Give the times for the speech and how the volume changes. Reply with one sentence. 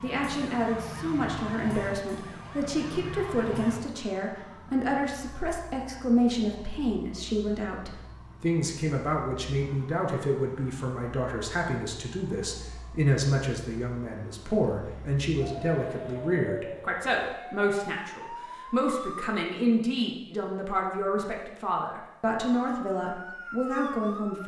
The speech can be heard from 0.0 to 24.4 s, at a steady volume.